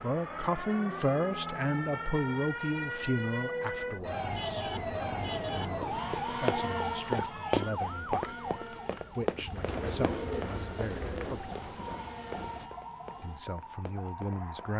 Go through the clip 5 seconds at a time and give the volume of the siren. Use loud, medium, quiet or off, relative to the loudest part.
loud, loud, medium.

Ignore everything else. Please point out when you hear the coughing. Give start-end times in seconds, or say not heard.
not heard.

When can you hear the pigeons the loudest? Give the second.
10 s.